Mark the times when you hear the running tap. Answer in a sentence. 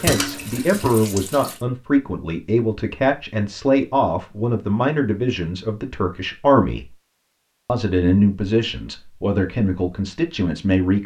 The running tap can be heard from 0.0 to 1.6 s.